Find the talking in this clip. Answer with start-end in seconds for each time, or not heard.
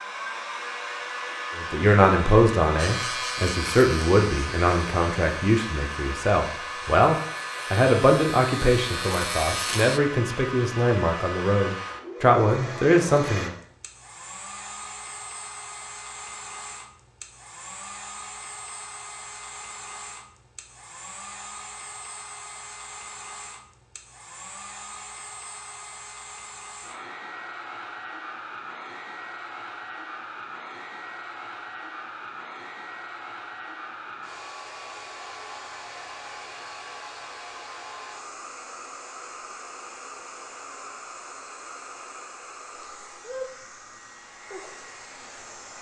1.6-13.6.